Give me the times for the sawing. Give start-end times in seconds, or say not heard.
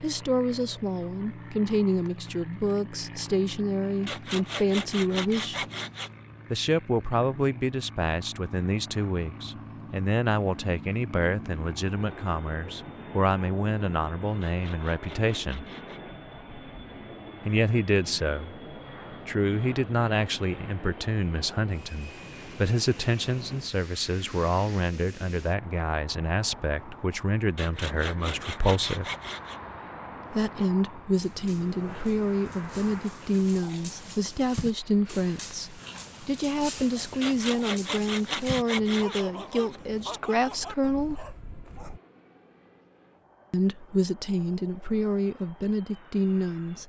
4.0-6.1, 14.4-16.0, 27.6-29.6, 37.2-39.8.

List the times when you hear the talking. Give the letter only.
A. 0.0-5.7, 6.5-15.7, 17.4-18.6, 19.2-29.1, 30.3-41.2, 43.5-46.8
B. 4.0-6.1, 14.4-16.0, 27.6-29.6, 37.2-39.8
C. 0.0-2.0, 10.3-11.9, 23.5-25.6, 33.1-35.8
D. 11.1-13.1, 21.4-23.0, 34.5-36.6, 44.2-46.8
A.